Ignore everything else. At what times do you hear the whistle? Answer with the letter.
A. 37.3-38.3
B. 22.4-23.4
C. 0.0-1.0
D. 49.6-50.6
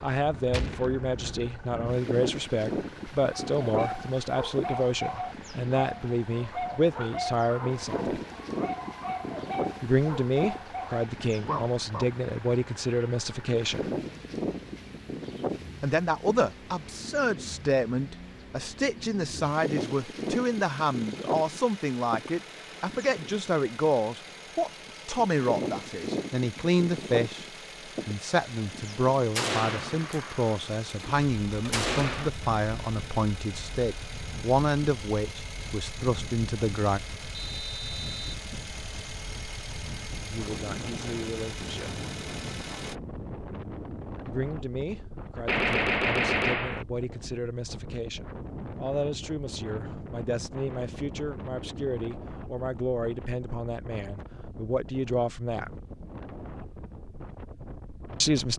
A.